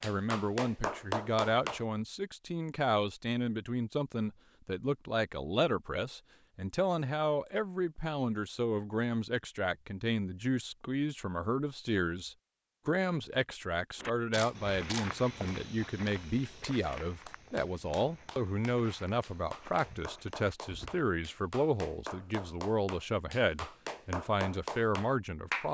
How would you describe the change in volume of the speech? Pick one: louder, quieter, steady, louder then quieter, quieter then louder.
steady.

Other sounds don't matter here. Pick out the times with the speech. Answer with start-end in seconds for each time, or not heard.
0.0-25.6.